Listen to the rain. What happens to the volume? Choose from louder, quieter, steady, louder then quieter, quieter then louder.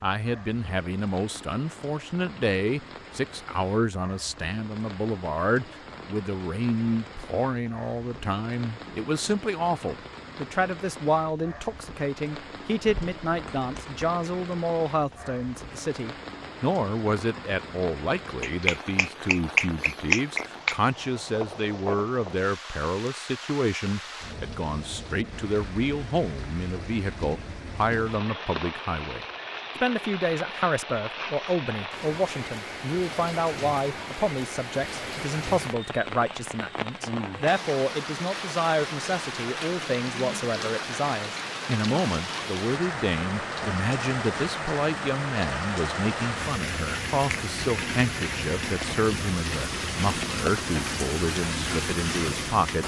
louder.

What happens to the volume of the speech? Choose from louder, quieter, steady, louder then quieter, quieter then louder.
steady.